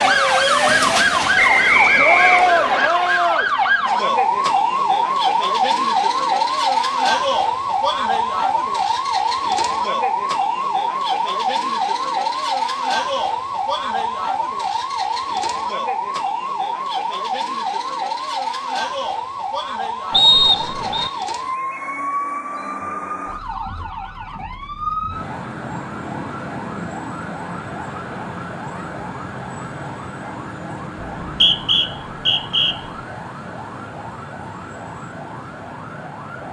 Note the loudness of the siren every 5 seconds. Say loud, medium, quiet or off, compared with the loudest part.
loud, loud, medium, medium, medium, quiet, quiet, quiet.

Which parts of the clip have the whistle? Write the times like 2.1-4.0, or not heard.
1.4-2.9, 20.1-21.1, 31.2-32.8.